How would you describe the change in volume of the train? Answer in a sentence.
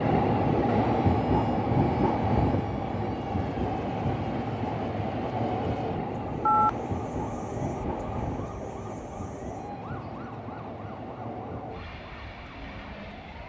The volume of the train goes down.